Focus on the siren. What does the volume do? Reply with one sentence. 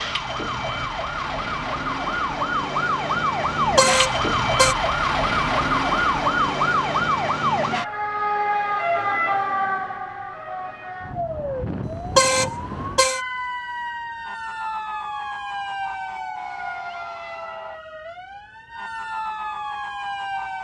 The loudness of the siren goes down.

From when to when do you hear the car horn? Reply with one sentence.
You can hear the car horn from 3.5 to 4.8 s and from 11.8 to 13.2 s.